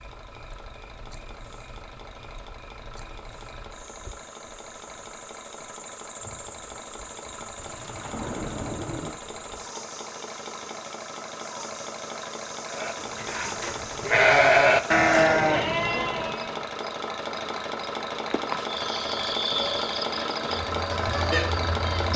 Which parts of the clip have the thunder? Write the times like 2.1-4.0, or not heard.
7.6-9.2.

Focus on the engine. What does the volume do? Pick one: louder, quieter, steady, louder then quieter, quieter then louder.
louder.